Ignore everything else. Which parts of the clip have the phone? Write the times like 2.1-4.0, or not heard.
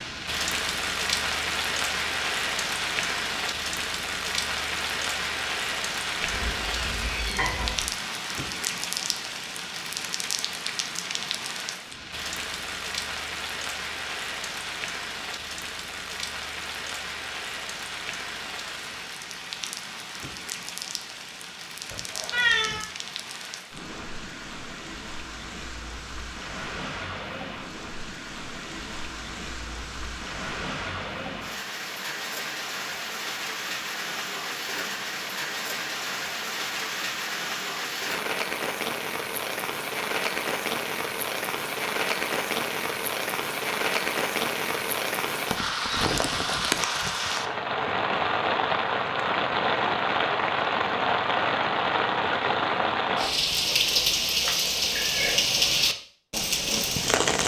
not heard.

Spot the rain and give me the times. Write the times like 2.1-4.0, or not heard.
0.0-57.4.